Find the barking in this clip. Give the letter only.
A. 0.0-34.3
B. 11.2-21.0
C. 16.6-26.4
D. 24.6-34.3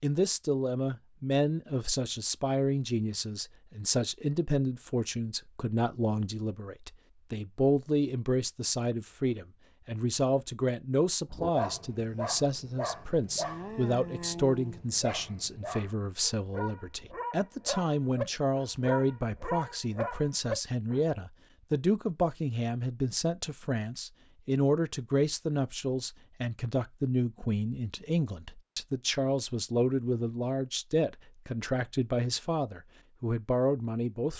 B.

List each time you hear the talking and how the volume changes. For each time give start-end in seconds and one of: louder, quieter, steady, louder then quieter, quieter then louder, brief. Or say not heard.
0.0-34.3 steady.